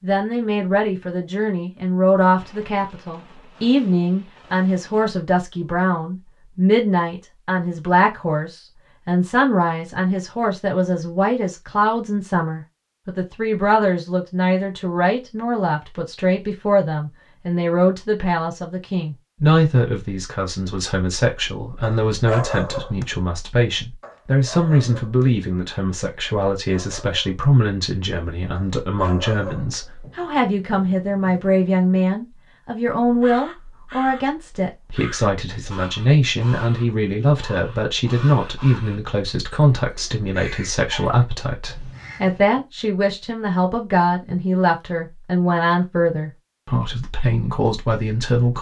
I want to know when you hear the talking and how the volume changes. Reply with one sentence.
You can hear the talking from 0.0 to 48.5 s, at a steady volume.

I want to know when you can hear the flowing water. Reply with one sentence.
You can't hear the flowing water here.